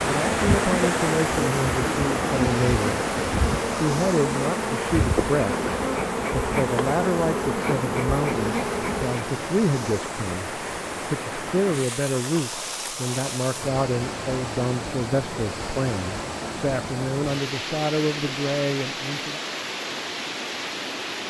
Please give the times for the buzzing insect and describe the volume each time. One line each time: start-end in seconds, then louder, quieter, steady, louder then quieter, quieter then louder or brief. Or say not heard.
0.1-9.3 steady.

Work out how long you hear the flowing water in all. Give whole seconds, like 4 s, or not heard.
21 s.